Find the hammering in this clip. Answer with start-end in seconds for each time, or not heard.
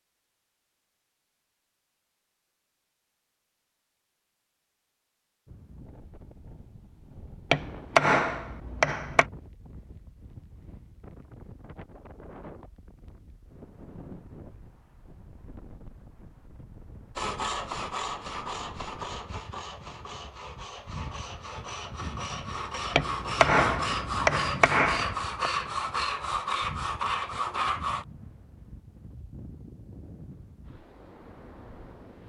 7.5-9.2, 22.9-25.5.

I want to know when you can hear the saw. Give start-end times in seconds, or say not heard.
17.1-28.1.